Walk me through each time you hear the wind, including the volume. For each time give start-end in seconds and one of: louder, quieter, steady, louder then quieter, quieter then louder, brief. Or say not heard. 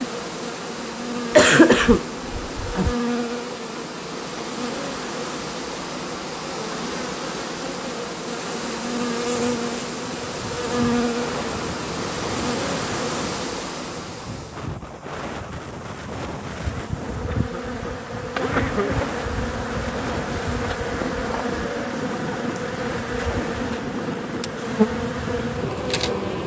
9.2-26.4 steady.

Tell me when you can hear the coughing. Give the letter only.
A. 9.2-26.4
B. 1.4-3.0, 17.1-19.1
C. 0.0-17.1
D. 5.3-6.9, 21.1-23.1
B.